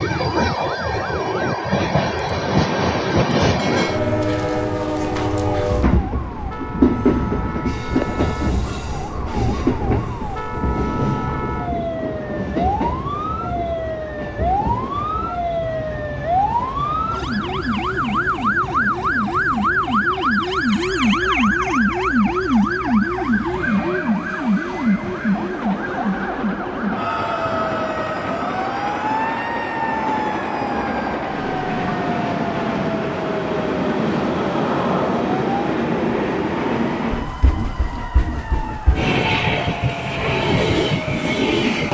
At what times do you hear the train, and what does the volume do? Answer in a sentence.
You can hear the train from 0.0 to 41.9 s, getting quieter then louder.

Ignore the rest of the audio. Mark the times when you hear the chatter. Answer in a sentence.
You can't hear the chatter here.